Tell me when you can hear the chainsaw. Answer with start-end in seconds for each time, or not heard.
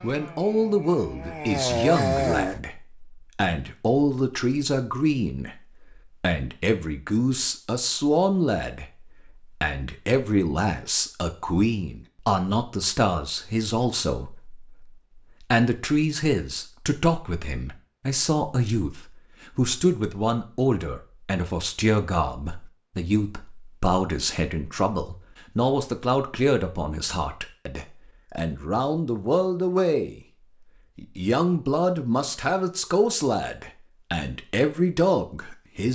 0.0-2.6.